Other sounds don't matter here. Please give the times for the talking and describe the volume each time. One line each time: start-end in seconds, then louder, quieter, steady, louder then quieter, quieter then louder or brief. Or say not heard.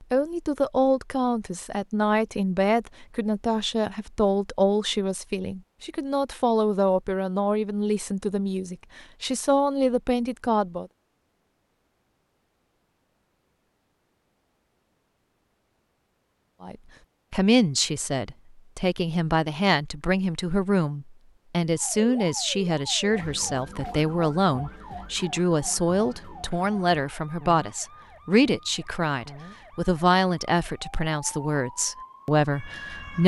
0.0-10.9 steady
16.6-33.2 steady.